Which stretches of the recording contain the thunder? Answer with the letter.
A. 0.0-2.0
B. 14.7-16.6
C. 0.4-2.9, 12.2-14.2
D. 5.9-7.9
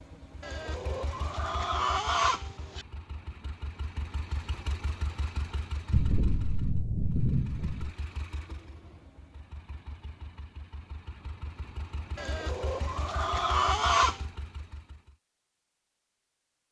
D.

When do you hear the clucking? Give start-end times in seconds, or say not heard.
0.4-2.9, 12.2-14.2.